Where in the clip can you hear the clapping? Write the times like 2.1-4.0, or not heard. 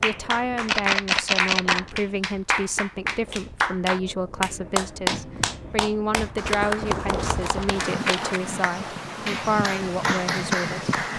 0.0-11.1.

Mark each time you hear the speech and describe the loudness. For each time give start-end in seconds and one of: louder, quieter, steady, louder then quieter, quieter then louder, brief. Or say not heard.
0.0-10.8 steady.